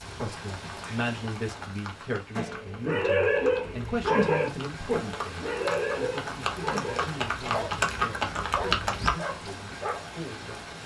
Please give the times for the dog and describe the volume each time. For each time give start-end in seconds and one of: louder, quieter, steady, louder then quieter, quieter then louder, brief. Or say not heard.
2.4-10.1 quieter.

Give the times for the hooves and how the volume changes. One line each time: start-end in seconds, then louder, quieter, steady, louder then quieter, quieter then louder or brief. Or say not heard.
0.5-9.2 louder.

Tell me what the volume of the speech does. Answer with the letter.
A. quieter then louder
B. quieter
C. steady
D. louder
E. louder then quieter
B.